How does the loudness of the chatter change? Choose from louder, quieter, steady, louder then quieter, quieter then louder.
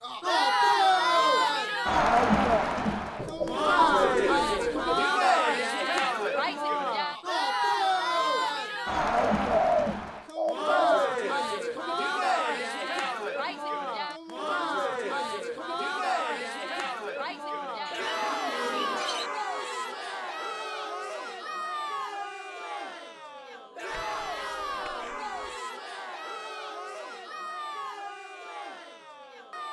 quieter.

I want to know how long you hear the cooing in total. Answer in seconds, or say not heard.
7 s.